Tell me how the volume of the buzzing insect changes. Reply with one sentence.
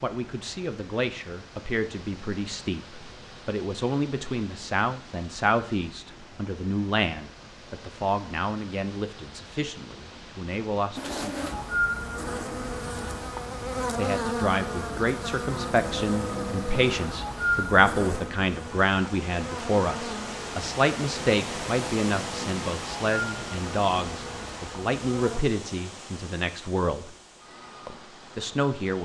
The loudness of the buzzing insect goes down.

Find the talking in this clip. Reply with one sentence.
You can hear the talking from 0.0 to 11.8 s, from 13.9 to 27.1 s and from 27.9 to 29.0 s.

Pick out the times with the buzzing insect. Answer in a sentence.
The buzzing insect can be heard from 10.9 to 25.4 s.